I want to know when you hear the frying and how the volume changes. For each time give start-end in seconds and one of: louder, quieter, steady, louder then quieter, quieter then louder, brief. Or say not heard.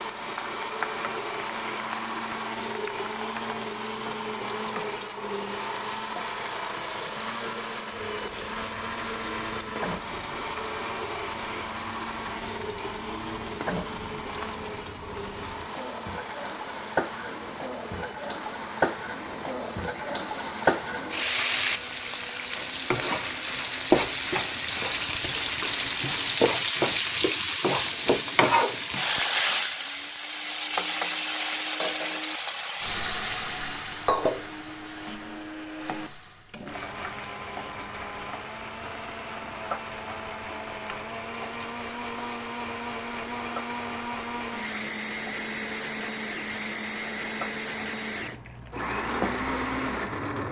0.0-50.4 louder then quieter.